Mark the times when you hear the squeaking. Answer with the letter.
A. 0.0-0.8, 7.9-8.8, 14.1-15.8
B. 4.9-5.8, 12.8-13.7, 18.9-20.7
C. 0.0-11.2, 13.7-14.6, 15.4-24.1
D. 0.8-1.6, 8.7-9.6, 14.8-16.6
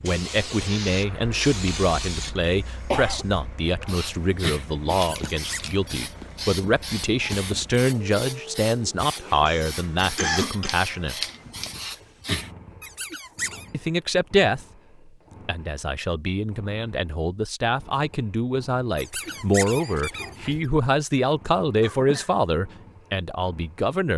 B.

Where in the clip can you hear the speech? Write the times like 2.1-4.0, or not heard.
0.0-11.2, 13.7-14.6, 15.4-24.1.